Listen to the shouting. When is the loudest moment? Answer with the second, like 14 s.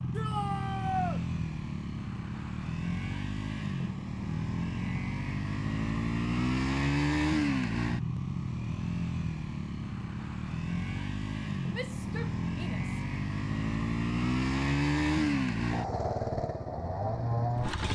1 s.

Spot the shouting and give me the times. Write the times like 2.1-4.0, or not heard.
0.1-1.2, 11.7-13.0.